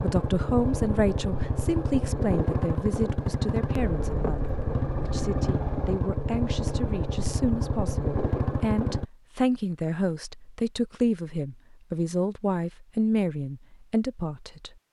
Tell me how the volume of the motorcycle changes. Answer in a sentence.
The loudness of the motorcycle stays about the same.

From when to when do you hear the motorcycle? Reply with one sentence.
The motorcycle can be heard from 0.0 to 9.1 s.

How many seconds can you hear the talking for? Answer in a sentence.
The talking can be heard for 15 seconds in total.